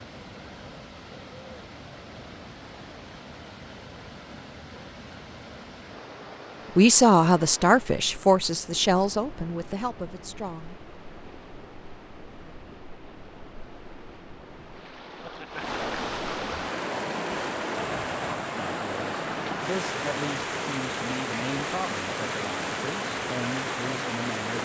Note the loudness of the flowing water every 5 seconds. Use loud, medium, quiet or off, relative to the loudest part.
quiet, quiet, quiet, loud, loud.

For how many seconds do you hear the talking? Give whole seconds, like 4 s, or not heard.
10 s.